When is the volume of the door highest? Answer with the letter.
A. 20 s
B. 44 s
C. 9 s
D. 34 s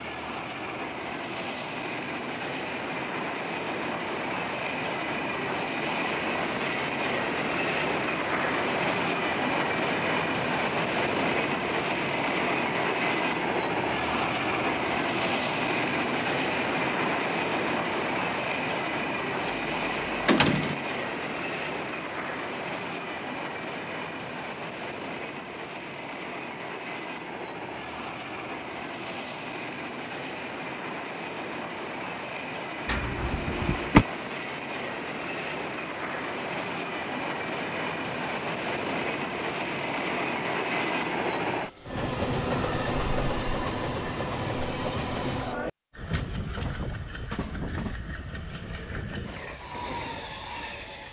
D.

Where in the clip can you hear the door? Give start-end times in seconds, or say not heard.
19.4-20.8, 32.9-34.0.